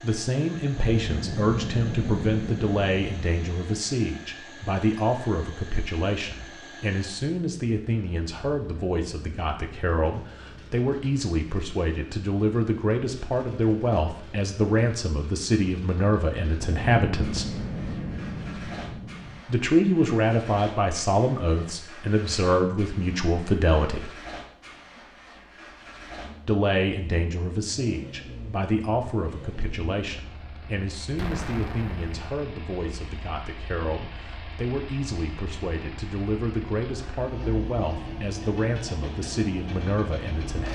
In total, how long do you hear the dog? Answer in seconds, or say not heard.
not heard.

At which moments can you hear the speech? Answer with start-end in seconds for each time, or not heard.
0.0-17.4, 19.4-24.1, 26.4-40.6.